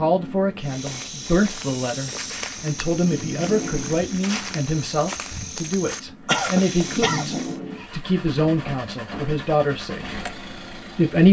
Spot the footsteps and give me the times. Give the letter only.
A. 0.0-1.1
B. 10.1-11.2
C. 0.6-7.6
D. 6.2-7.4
C.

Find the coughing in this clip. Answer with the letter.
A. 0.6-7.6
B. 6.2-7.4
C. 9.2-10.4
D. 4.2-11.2
B.